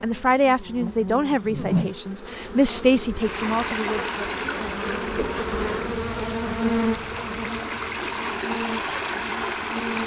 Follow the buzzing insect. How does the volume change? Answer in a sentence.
The loudness of the buzzing insect goes up, then down.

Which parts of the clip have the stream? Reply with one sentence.
The stream can be heard from 3.1 to 10.0 s.